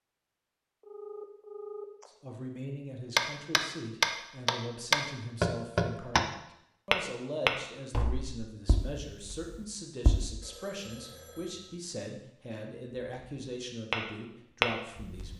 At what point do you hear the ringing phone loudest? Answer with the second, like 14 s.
2 s.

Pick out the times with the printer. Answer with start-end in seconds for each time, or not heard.
not heard.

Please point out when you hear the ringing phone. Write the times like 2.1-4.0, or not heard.
0.8-2.1, 10.4-11.8.